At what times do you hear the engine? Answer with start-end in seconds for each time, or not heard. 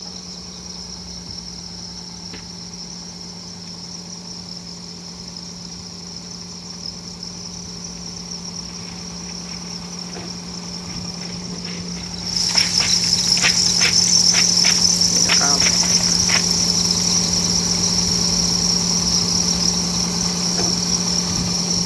0.0-21.8.